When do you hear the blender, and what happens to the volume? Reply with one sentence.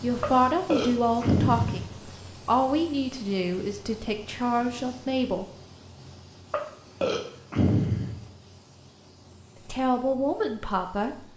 The blender can't be heard in this clip.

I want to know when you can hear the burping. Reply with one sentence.
You can hear the burping from 0.2 to 1.9 s and from 6.5 to 8.2 s.